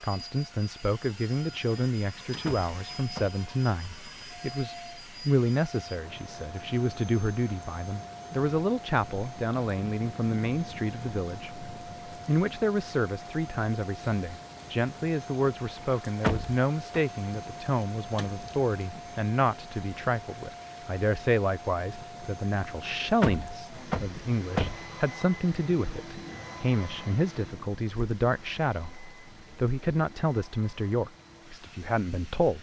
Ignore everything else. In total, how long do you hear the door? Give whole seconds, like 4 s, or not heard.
3 s.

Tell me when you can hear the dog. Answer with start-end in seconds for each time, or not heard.
not heard.